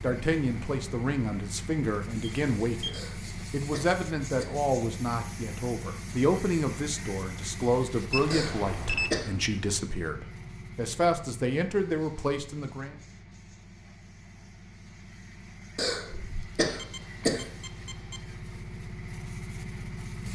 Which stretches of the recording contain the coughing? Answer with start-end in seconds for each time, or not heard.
2.9-4.6, 8.3-9.3, 15.8-17.4.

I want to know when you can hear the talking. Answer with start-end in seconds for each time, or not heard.
0.0-12.9.